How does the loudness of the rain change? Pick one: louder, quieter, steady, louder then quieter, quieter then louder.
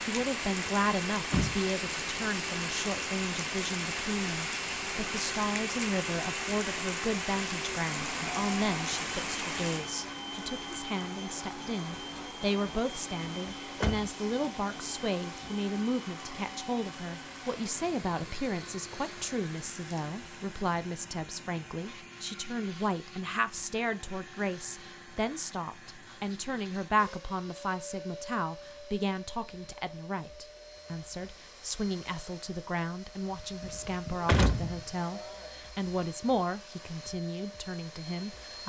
quieter.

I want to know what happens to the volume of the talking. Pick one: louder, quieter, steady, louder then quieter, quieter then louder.
steady.